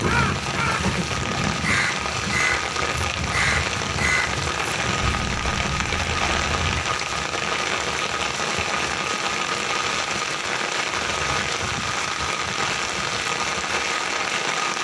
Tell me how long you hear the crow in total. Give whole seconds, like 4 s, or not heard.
7 s.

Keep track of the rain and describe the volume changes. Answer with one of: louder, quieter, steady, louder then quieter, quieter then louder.
steady.